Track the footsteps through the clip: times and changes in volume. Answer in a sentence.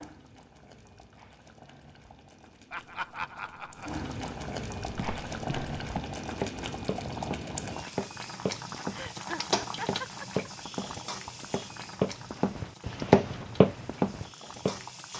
You can hear the footsteps from 4.9 to 14.8 s, getting louder.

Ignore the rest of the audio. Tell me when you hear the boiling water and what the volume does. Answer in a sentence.
The boiling water can be heard from 0.0 to 15.1 s, getting louder then quieter.